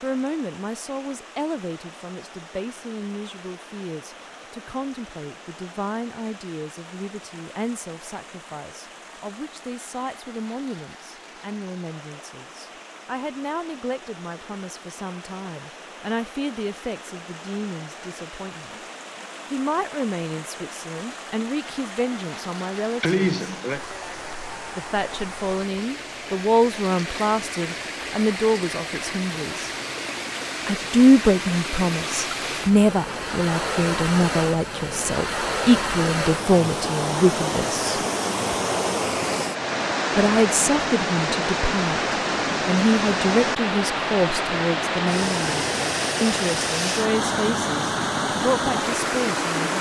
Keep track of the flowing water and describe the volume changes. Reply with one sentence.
The loudness of the flowing water goes up.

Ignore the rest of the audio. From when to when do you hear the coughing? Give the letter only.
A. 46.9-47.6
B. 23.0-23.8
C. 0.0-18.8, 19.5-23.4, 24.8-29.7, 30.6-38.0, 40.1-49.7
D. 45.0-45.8
B.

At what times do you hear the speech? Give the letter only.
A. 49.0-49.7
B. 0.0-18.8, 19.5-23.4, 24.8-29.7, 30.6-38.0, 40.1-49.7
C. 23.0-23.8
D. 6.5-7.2
B.